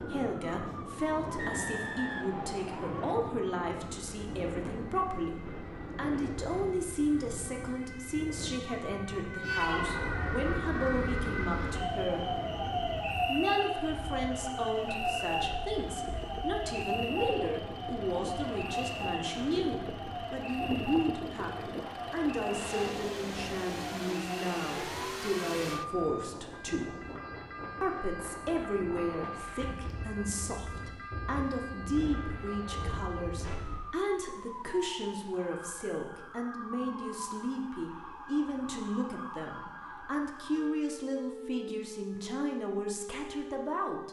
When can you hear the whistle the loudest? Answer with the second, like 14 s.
2 s.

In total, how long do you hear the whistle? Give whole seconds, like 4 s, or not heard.
2 s.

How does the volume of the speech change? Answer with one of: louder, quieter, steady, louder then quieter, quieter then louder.
steady.